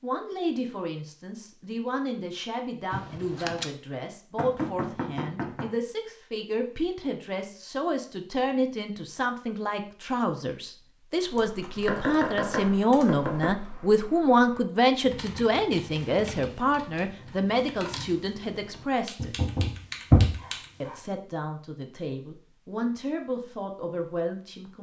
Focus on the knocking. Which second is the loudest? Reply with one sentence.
The loudest moment of the knocking is at 20 seconds.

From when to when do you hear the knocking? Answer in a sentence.
The knocking can be heard from 4.3 to 5.7 s, from 11.8 to 13.5 s and from 19.1 to 20.4 s.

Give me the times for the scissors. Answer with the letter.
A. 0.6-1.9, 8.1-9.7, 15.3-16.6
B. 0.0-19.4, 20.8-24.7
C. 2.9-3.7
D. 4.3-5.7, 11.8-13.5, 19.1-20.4
C.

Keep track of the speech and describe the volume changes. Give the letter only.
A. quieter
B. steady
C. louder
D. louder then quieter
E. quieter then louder
D.